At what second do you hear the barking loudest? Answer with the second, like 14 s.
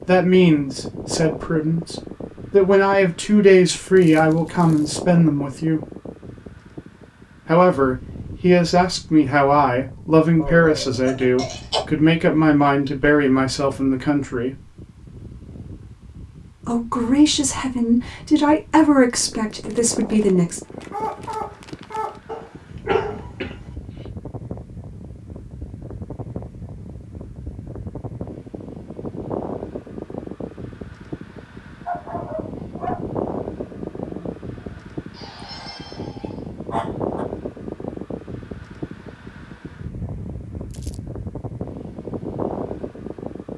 23 s.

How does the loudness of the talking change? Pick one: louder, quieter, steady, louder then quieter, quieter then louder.
steady.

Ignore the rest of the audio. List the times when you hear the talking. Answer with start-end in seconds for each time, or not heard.
0.1-5.8, 7.5-14.7, 16.6-20.6.